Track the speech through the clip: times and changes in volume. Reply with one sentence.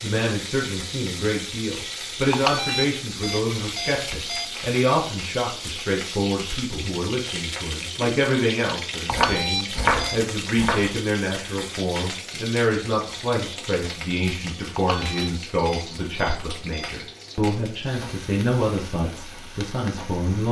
You can hear the speech from 0.0 to 20.4 s, at a steady volume.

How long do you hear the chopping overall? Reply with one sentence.
You can hear the chopping for 2 seconds altogether.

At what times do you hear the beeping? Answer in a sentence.
The beeping can be heard from 2.3 to 4.5 s, from 9.1 to 10.2 s and from 14.8 to 16.9 s.